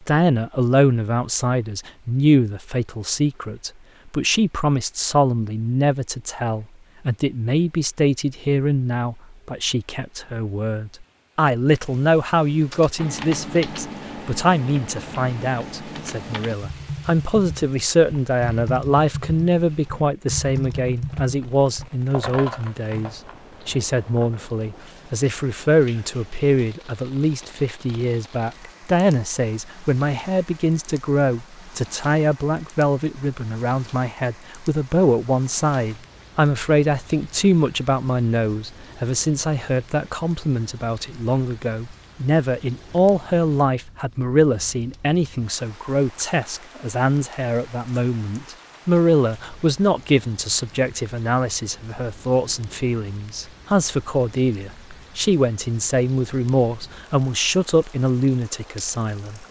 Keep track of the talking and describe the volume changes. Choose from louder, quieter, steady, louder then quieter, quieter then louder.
steady.